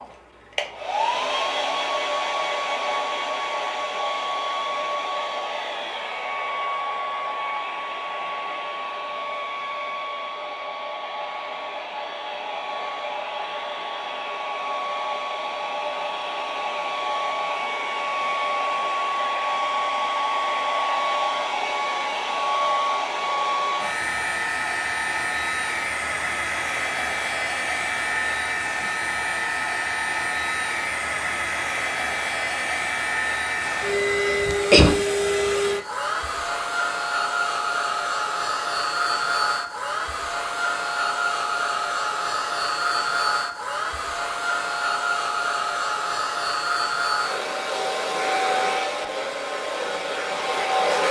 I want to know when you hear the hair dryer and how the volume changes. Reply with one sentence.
The hair dryer can be heard from 0.0 to 51.0 s, at a steady volume.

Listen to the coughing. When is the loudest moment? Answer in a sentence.
The loudest moment of the coughing is at 35 seconds.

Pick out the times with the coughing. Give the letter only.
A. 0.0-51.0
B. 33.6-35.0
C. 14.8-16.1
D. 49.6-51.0
B.